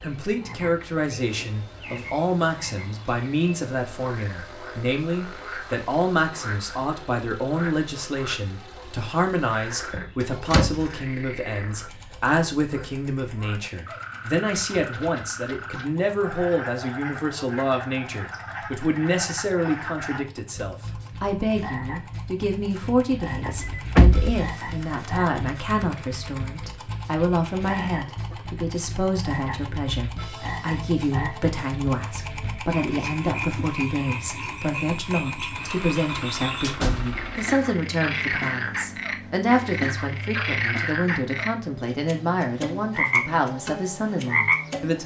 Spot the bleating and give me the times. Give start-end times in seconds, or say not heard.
not heard.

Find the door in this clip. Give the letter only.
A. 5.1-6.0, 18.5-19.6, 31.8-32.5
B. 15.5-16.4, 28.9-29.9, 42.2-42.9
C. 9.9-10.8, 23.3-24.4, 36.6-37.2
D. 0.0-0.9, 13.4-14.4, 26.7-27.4
C.